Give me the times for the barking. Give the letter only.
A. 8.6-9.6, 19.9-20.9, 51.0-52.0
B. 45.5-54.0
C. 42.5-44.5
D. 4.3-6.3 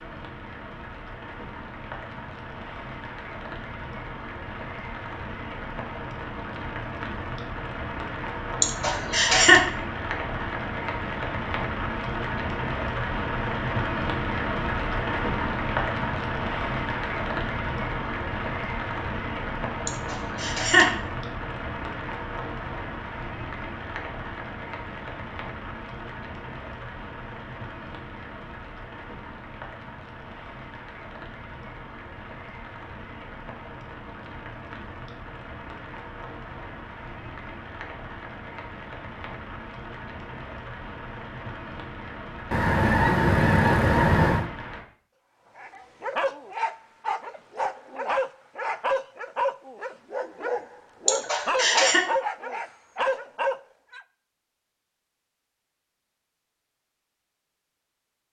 B.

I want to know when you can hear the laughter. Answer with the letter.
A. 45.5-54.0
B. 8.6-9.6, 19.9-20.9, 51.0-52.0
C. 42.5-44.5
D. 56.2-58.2
B.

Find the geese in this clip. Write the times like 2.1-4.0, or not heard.
42.5-44.5.